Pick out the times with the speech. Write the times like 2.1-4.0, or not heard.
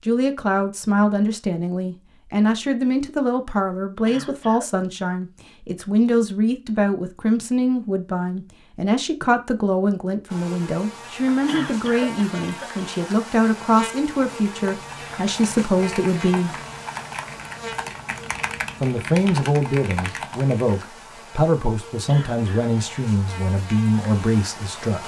0.0-16.6, 18.8-25.0.